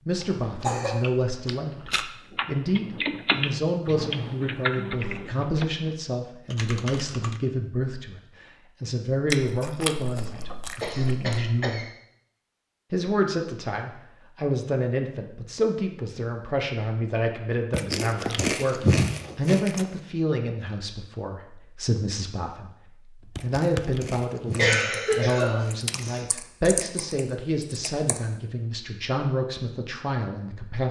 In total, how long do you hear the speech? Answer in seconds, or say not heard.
29 s.